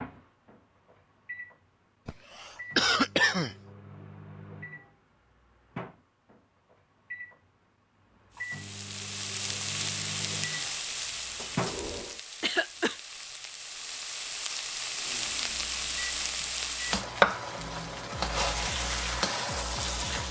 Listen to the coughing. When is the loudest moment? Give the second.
3 s.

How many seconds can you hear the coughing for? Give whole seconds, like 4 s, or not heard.
2 s.